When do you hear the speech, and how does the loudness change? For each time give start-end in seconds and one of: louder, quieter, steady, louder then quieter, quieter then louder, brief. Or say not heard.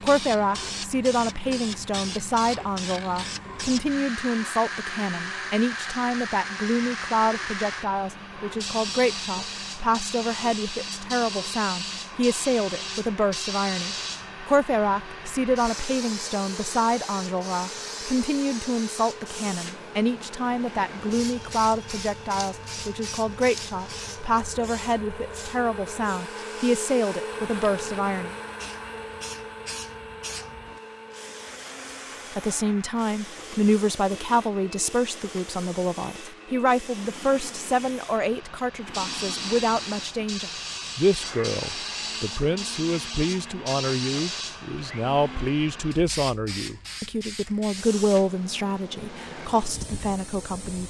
0.0-28.4 steady
32.4-50.8 steady.